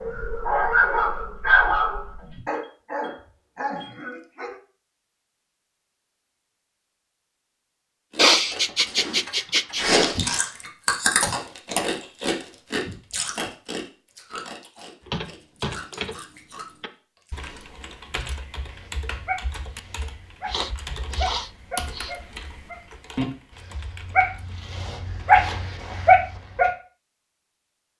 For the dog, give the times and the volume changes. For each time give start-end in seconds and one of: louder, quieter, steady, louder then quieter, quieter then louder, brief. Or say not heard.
0.0-4.5 quieter
18.6-26.7 louder.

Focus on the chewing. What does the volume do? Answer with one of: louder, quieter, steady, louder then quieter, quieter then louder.
quieter.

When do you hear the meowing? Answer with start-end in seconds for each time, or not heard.
not heard.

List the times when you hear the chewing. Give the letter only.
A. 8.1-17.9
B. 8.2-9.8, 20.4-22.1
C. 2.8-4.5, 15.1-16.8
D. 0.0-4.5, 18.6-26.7
A.